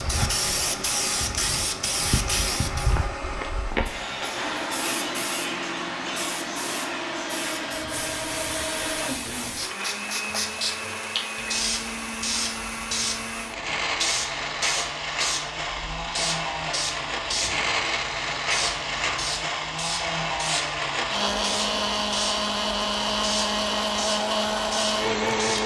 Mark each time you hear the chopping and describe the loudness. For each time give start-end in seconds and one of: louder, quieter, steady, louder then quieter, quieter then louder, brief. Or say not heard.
not heard.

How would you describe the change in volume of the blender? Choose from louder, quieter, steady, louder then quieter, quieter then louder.
louder.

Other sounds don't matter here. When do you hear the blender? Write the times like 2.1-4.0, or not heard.
0.0-25.6.